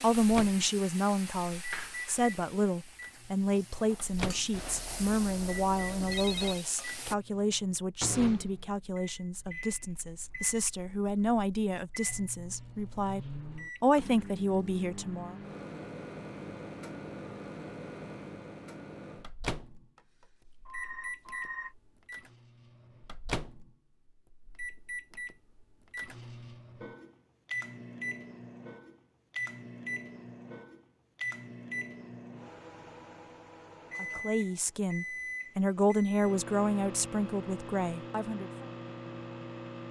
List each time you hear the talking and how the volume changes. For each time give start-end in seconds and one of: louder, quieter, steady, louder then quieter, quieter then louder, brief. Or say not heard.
0.0-15.3 steady
34.0-38.6 louder then quieter.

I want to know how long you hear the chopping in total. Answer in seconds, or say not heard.
not heard.